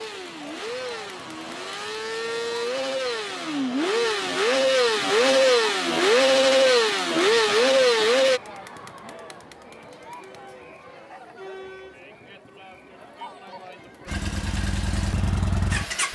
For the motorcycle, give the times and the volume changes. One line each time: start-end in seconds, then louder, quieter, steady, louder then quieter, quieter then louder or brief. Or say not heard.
0.0-8.4 louder
14.1-16.0 brief.